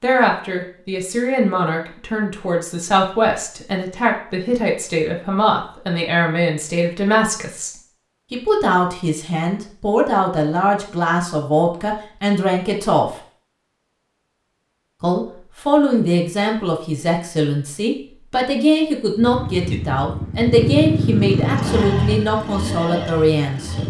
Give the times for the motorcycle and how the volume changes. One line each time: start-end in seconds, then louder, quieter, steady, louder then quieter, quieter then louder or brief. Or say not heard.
19.1-23.8 louder then quieter.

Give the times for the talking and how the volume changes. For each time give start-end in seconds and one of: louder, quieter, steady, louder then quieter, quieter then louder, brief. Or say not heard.
0.0-7.7 steady
8.3-13.2 steady
15.0-23.8 steady.